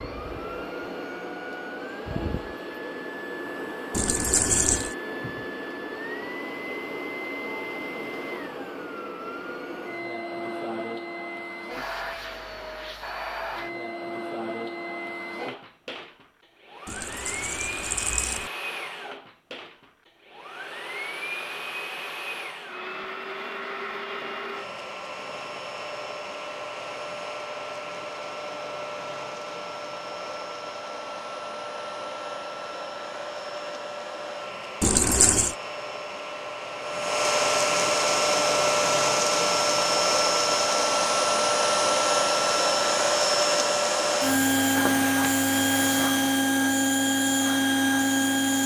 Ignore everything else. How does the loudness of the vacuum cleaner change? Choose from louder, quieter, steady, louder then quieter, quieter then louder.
louder.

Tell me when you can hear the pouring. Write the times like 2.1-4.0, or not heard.
3.9-5.0, 16.9-18.5, 34.8-35.5.